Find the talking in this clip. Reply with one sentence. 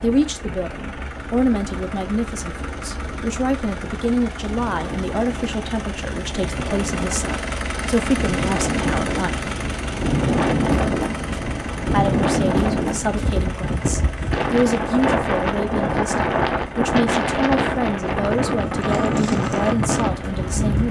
You can hear the talking from 0.0 to 9.5 s and from 11.9 to 20.8 s.